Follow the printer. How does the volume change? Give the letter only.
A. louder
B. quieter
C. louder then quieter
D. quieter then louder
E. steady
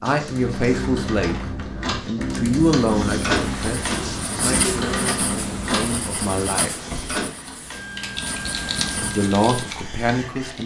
C.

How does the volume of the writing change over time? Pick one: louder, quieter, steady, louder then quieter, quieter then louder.
quieter then louder.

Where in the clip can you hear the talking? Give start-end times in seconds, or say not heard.
0.0-6.8, 8.9-10.6.